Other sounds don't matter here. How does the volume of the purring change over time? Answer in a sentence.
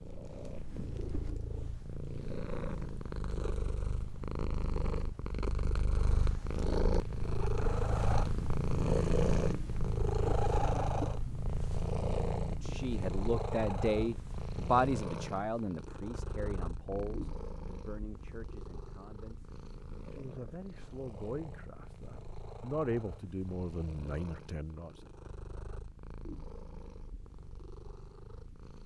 The loudness of the purring goes up, then down.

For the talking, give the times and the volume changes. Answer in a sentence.
The talking can be heard from 12.5 to 24.9 s, getting quieter then louder.